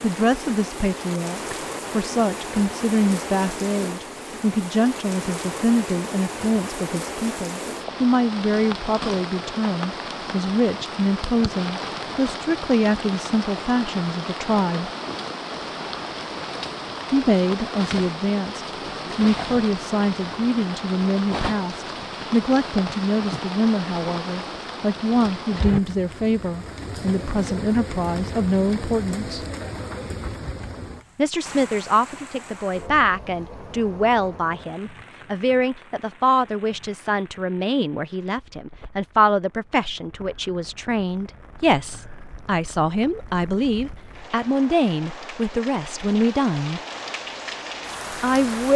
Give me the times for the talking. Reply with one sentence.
You can hear the talking from 0.0 to 14.9 s, from 17.1 to 29.4 s, from 31.1 to 46.8 s and from 48.1 to 48.7 s.